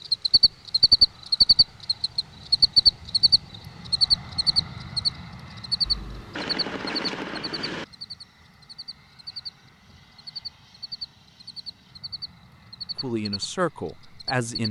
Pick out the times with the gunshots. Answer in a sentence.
The gunshots can be heard from 5.8 to 7.8 s.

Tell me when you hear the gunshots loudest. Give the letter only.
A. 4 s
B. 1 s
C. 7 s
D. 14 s
C.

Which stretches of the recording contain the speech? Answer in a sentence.
You can hear the speech from 13.0 to 14.6 s.